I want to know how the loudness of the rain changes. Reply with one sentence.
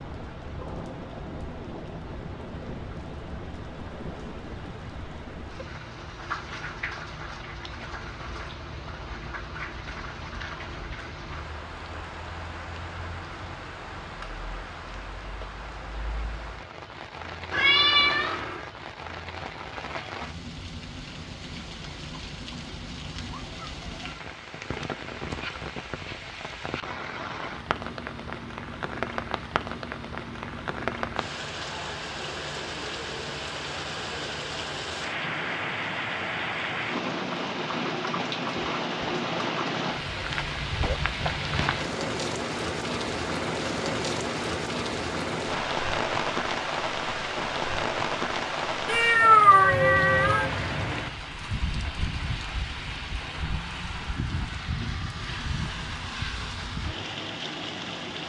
The loudness of the rain goes up.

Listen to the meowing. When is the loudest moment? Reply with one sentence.
The volume of the meowing peaks at 49 seconds.